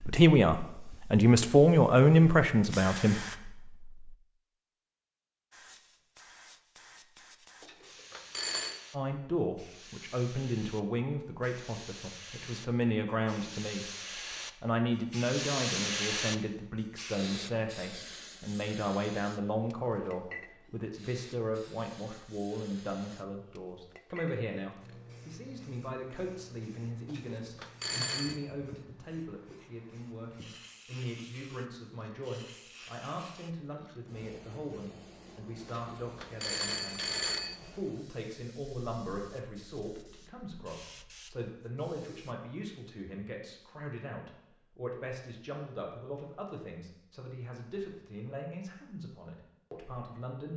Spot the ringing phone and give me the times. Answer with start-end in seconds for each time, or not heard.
7.6-8.8, 27.1-28.4, 35.6-37.5.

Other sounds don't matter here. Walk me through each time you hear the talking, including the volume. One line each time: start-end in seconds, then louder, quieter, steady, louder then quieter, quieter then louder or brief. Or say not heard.
0.0-4.0 louder then quieter
8.9-13.9 quieter then louder
14.6-50.5 quieter.